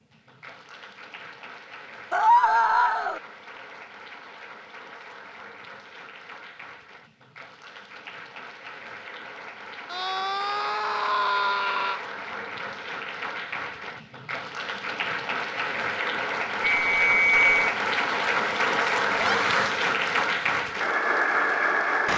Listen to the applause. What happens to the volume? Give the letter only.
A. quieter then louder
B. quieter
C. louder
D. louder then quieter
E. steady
C.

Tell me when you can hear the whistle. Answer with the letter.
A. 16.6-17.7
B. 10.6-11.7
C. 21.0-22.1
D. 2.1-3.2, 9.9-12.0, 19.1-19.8
A.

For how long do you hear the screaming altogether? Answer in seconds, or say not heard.
4 s.